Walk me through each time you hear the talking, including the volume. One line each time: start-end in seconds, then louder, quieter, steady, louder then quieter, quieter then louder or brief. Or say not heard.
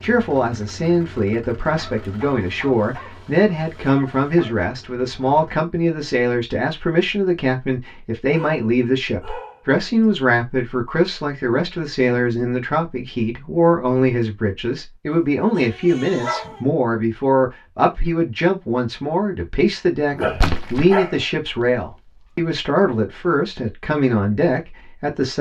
0.0-25.3 steady.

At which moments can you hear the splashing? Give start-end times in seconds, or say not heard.
20.4-21.8.